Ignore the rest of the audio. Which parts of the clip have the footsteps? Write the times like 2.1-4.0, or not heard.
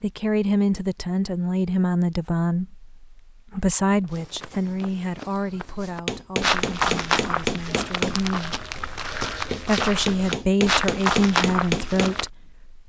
4.2-12.3.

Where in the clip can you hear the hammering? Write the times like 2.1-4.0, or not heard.
6.0-12.2.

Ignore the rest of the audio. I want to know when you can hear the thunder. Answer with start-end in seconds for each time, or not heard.
not heard.